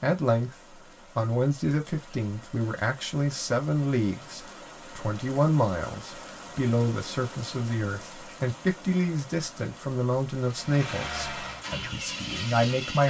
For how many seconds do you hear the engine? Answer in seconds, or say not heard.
3 s.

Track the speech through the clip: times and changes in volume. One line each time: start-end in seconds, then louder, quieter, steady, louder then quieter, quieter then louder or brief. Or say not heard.
0.0-13.0 steady.